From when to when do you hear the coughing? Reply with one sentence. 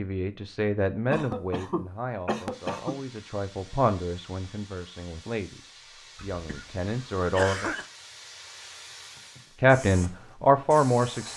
The coughing can be heard from 1.1 to 3.0 s and from 6.2 to 7.8 s.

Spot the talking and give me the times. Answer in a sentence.
The talking can be heard from 0.0 to 7.7 s and from 9.6 to 11.3 s.